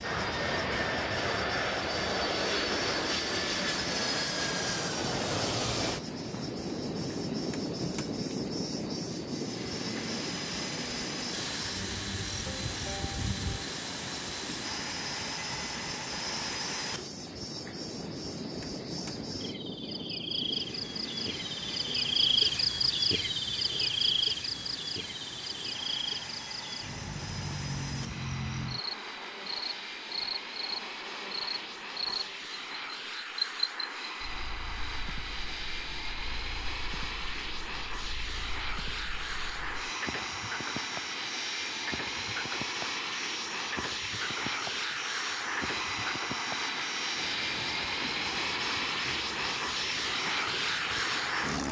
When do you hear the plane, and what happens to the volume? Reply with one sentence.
You can hear the plane from 0.0 to 51.6 s, getting quieter then louder.